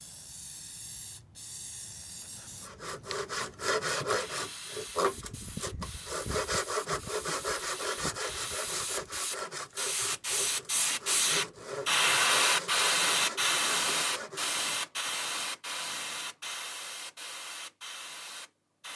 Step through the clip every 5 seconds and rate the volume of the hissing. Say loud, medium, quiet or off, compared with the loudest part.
quiet, quiet, loud, medium.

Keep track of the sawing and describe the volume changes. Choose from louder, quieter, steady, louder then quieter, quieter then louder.
quieter.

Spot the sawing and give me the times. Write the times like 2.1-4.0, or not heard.
2.6-14.7.